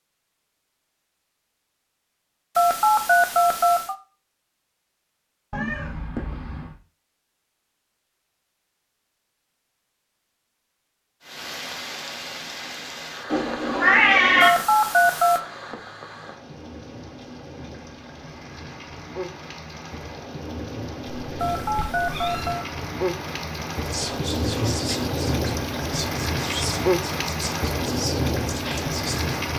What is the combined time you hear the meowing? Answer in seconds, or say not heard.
4 s.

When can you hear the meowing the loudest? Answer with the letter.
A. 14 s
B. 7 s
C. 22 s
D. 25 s
A.